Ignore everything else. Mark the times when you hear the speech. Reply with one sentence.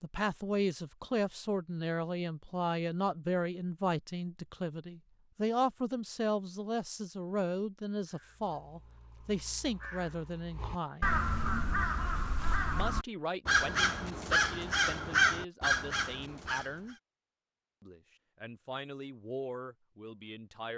The speech can be heard from 0.0 to 11.2 s, from 12.7 to 16.9 s and from 17.8 to 20.7 s.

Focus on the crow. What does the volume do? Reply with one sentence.
The volume of the crow goes up.